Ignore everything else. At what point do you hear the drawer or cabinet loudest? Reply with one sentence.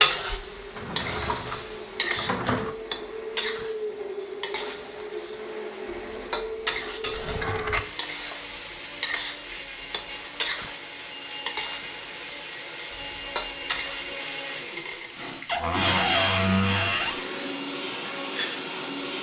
The volume of the drawer or cabinet peaks at 16 seconds.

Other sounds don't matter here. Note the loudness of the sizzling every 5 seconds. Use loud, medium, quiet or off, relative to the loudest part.
loud, medium, medium, medium.